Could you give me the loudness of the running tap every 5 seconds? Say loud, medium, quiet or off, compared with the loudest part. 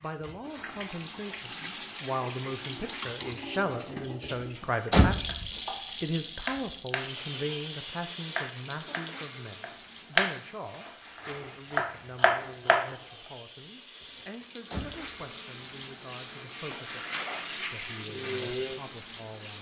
loud, loud, medium, loud.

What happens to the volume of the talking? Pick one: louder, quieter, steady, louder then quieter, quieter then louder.
quieter.